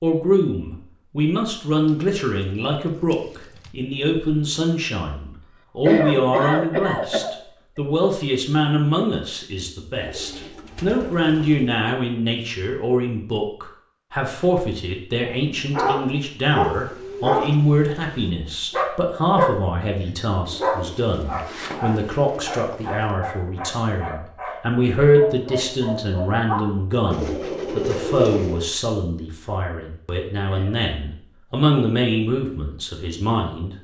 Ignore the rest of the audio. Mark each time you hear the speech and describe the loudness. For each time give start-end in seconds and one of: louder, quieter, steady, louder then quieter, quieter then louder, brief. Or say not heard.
0.0-33.8 steady.